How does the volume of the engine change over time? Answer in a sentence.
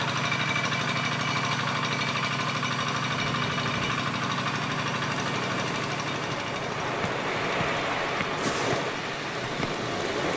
The loudness of the engine goes down.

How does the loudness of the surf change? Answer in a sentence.
The volume of the surf goes up.